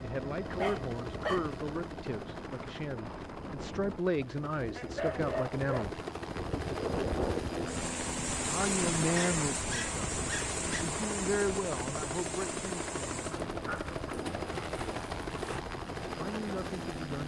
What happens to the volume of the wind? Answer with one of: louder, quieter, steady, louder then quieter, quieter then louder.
louder then quieter.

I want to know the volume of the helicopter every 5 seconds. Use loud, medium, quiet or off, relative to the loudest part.
medium, loud, loud, loud.